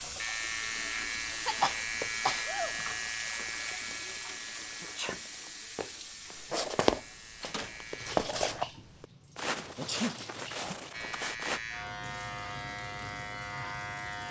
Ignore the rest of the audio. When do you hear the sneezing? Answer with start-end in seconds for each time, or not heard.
1.4-2.8, 4.8-5.2, 9.8-10.2.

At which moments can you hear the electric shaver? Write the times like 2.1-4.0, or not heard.
0.0-8.2, 10.9-14.2.